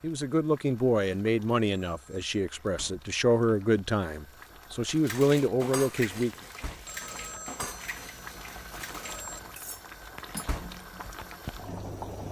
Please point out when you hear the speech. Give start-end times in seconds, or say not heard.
0.0-6.3.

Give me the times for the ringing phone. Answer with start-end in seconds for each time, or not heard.
1.8-2.3, 6.8-9.6.